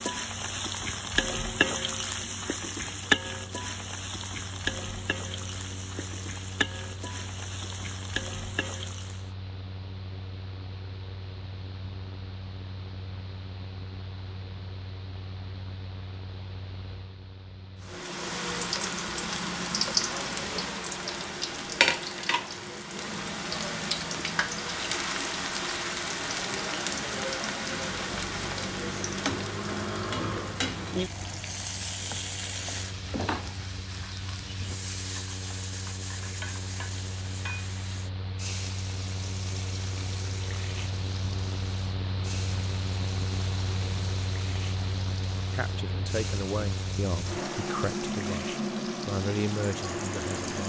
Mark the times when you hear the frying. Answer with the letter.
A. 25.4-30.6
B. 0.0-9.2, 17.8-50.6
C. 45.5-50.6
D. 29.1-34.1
B.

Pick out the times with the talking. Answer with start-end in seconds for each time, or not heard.
45.5-50.6.